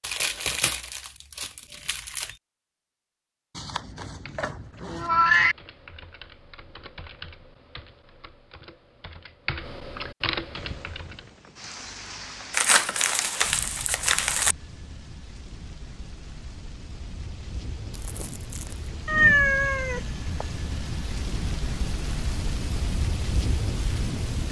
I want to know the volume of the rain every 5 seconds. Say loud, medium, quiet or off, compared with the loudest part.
off, off, medium, medium, loud.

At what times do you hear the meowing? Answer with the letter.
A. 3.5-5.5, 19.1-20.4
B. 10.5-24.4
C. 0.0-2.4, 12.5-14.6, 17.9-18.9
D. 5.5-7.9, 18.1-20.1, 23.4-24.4
A.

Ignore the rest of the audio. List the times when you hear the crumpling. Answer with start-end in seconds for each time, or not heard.
0.0-2.4, 12.5-14.6, 17.9-18.9.